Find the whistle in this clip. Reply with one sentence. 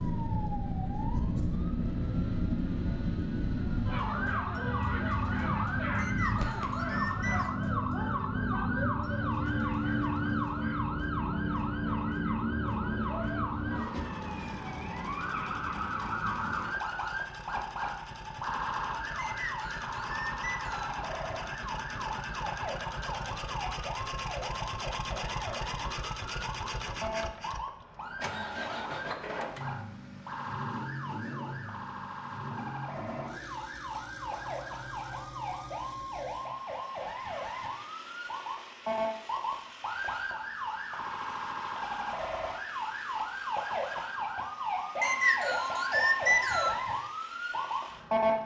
The whistle can be heard from 6.0 to 7.5 s, from 19.1 to 21.0 s and from 45.0 to 46.8 s.